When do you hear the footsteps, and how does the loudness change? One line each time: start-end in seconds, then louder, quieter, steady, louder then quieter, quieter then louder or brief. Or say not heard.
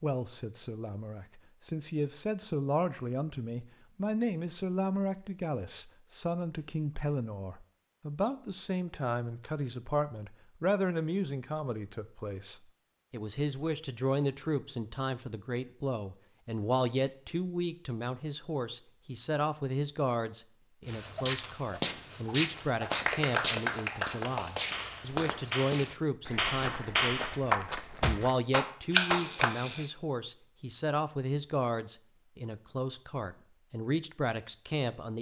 20.9-28.4 quieter.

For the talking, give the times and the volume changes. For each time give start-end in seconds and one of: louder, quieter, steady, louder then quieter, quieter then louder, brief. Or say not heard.
0.0-35.1 steady.